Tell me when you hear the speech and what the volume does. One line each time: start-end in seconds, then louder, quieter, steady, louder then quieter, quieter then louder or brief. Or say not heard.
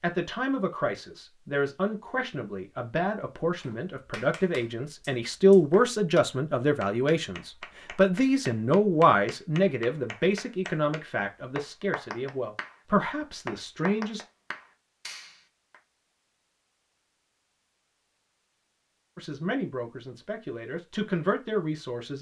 0.0-14.2 louder then quieter
19.1-22.1 brief.